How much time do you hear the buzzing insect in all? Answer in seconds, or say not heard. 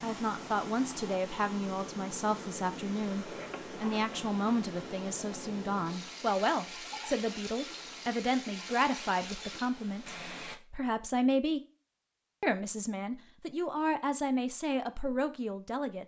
not heard.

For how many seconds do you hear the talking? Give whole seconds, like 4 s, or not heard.
15 s.